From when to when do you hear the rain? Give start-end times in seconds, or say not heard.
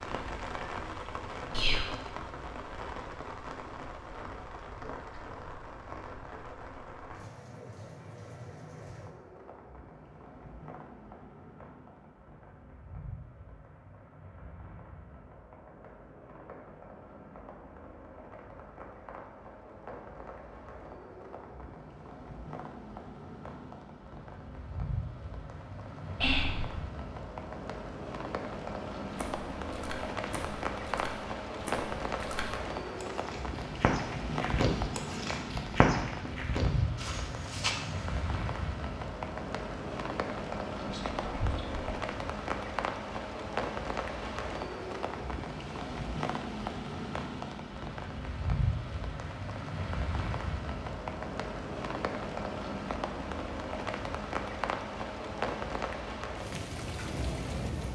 0.0-57.9.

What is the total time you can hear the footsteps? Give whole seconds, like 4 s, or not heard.
9 s.